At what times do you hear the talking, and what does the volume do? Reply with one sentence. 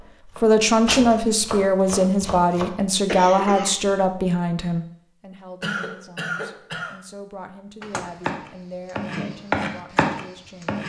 The talking can be heard from 0.4 to 10.8 s, getting quieter.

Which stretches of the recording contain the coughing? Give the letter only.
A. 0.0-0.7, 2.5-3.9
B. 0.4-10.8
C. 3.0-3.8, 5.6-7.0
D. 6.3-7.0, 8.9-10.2
C.